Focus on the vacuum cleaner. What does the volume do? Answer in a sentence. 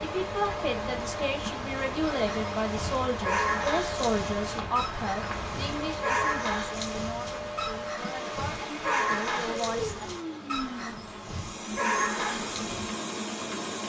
The volume of the vacuum cleaner stays about the same.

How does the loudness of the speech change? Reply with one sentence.
The loudness of the speech goes down.